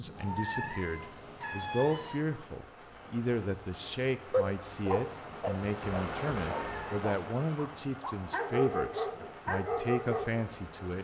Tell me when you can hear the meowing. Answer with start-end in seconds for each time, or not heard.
0.1-2.1, 6.5-7.0.